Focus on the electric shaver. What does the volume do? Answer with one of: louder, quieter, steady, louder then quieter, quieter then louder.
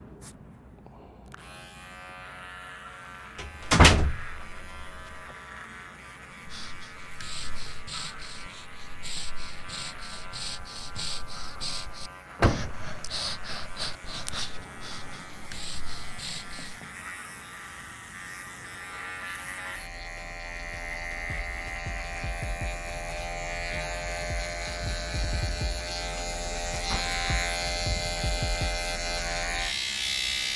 louder.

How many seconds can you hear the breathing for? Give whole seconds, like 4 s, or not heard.
10 s.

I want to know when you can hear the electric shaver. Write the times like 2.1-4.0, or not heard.
0.0-30.5.